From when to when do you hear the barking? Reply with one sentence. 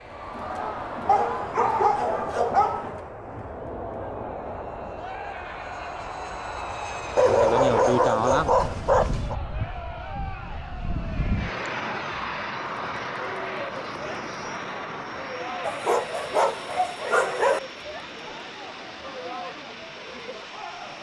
The barking can be heard from 1.1 to 2.9 s, from 7.2 to 9.3 s and from 15.6 to 17.6 s.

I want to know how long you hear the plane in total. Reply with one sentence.
You can hear the plane for 21 seconds altogether.